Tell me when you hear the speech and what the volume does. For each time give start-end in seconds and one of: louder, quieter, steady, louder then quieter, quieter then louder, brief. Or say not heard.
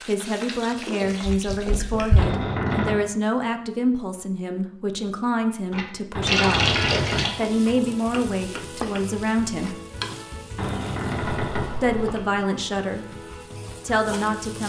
0.1-9.8 steady
11.8-13.1 brief
13.8-14.6 brief.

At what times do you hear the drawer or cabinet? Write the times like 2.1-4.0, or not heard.
2.1-3.0, 6.2-7.3, 10.6-11.8.